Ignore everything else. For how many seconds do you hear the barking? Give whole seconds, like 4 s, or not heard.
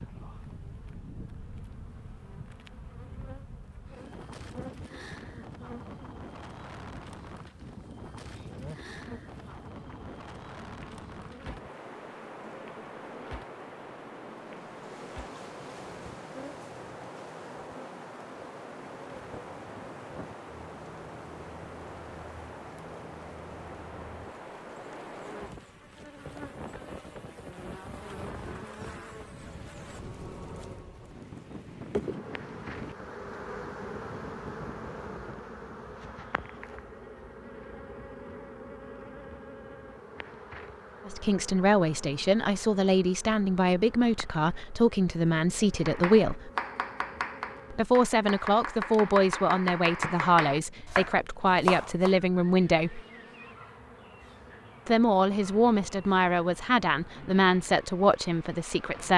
not heard.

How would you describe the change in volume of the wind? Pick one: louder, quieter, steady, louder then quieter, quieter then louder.
steady.